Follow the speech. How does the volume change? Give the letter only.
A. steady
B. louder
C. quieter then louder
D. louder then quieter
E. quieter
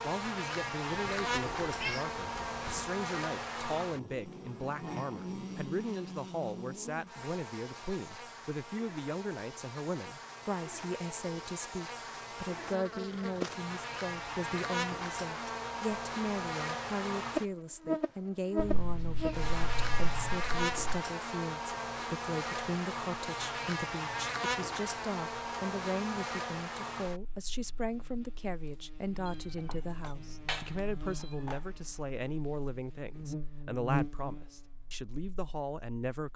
A.